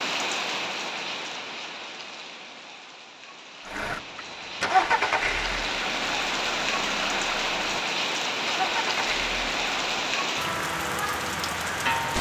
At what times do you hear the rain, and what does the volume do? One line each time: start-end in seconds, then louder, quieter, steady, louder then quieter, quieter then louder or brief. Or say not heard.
0.0-12.1 quieter then louder.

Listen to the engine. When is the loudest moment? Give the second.
5 s.